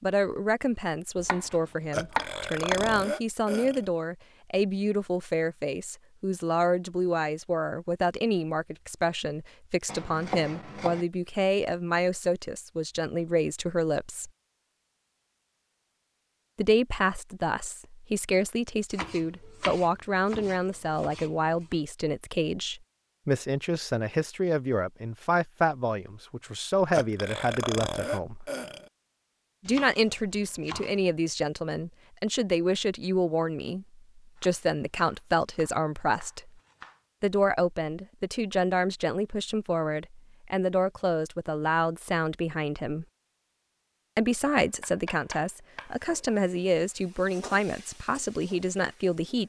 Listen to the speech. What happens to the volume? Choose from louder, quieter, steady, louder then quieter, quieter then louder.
steady.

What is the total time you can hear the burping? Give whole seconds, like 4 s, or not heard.
4 s.